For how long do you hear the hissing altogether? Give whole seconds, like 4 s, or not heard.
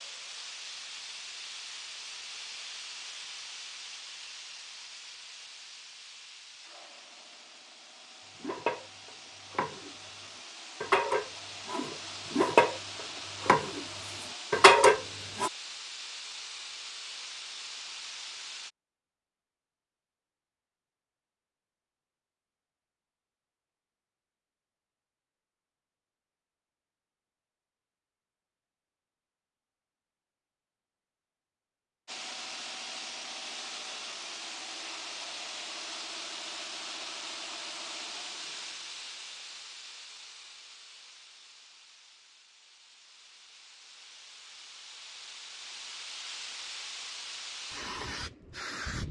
36 s.